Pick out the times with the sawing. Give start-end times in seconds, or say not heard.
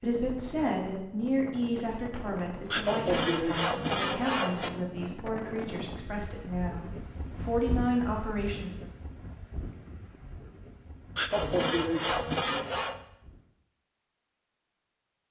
2.7-4.7, 11.2-13.0.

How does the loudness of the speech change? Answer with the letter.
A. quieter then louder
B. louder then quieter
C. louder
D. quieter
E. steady
A.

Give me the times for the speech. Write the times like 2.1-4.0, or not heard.
0.0-8.8.